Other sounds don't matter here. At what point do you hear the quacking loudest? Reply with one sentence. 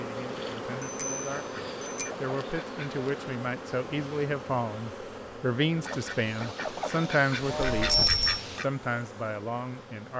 The loudest moment of the quacking is at 8 seconds.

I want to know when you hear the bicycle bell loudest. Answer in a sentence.
The loudest moment of the bicycle bell is at 8 seconds.